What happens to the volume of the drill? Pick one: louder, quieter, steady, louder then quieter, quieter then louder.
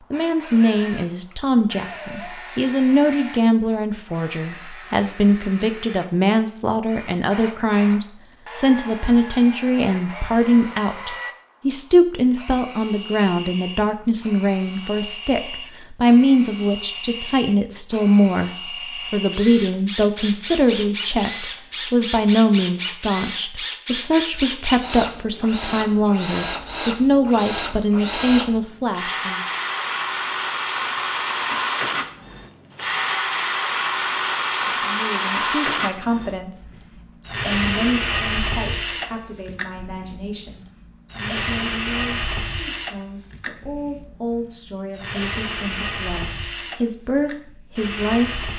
louder then quieter.